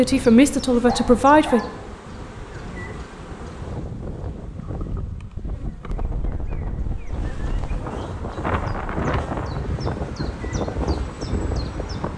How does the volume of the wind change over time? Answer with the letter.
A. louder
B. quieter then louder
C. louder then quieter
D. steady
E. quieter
A.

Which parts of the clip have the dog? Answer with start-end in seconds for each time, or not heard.
0.8-1.6.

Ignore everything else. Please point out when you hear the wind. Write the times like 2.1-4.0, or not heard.
0.0-12.1.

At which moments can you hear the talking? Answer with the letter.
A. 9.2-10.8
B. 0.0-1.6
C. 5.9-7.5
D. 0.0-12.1
B.